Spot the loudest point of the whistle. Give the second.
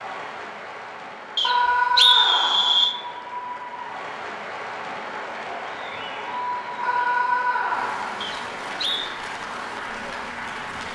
2 s.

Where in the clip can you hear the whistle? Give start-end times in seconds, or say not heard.
1.4-3.0, 8.2-9.2.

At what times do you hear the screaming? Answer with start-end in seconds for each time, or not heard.
1.4-2.9, 6.8-8.2.